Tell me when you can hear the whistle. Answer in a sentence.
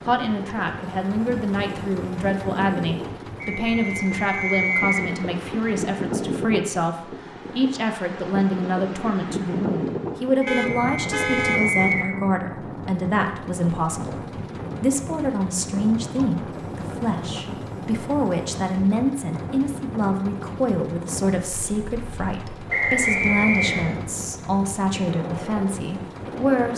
The whistle can be heard from 3.4 to 5.0 s, from 10.6 to 12.1 s and from 22.7 to 23.9 s.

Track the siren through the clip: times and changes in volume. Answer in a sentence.
The siren can't be heard in this clip.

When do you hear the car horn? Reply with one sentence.
The car horn can be heard from 10.4 to 11.8 s.